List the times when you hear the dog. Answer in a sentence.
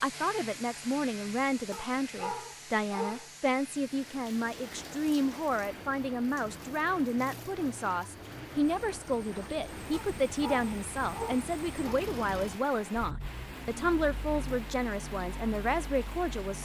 You can hear the dog from 1.7 to 3.3 s and from 9.9 to 11.9 s.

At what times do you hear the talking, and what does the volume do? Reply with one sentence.
You can hear the talking from 0.0 to 16.6 s, at a steady volume.